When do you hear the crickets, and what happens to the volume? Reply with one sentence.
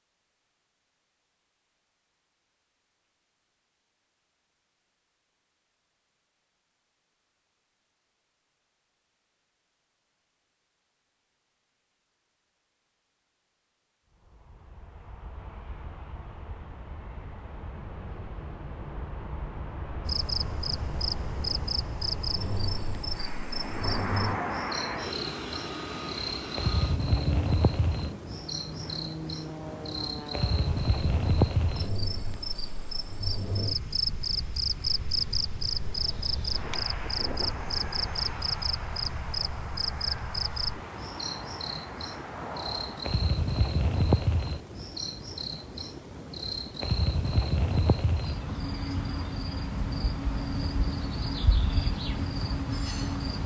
The crickets can be heard from 20.1 to 53.4 s, at a steady volume.